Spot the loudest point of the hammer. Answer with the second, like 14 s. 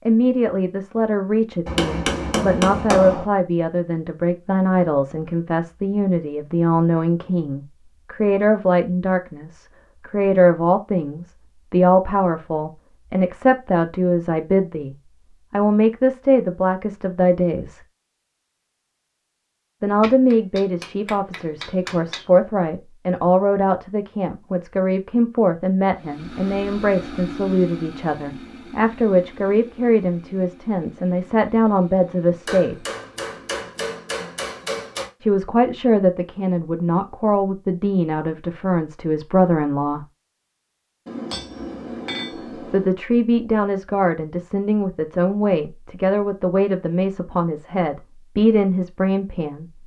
3 s.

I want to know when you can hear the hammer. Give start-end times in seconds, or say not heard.
1.6-3.2, 20.0-22.2, 32.5-35.1, 41.0-43.0.